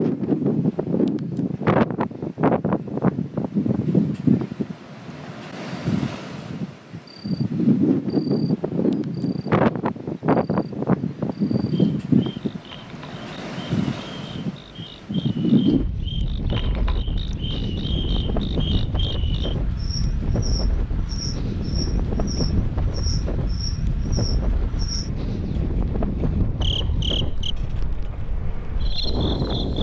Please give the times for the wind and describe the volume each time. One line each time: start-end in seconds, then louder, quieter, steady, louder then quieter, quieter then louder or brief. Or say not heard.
0.0-29.7 quieter.